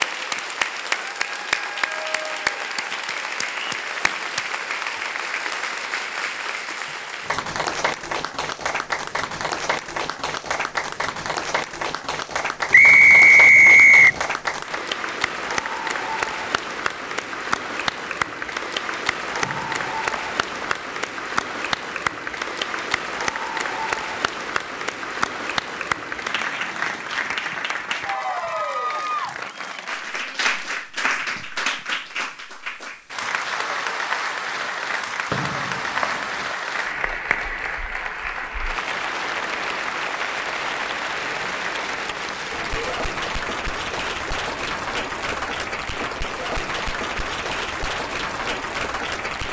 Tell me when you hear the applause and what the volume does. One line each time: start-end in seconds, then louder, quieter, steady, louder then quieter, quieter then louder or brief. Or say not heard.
0.0-49.4 steady.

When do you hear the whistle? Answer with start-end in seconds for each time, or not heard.
12.7-14.2, 19.4-20.8, 35.3-36.5.